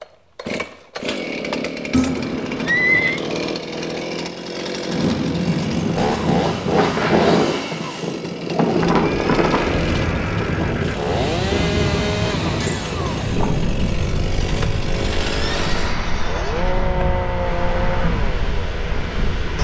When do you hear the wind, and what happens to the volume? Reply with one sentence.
You can hear the wind from 4.8 to 19.5 s, getting quieter.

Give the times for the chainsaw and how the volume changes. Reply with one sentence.
The chainsaw can be heard from 0.0 to 19.5 s, at a steady volume.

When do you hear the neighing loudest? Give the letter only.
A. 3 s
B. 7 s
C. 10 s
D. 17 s
A.